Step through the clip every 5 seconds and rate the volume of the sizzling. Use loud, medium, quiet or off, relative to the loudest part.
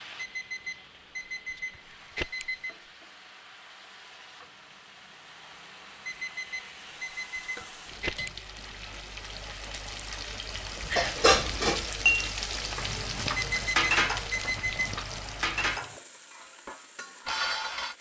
quiet, medium, loud, medium.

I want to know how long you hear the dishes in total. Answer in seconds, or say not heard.
7 s.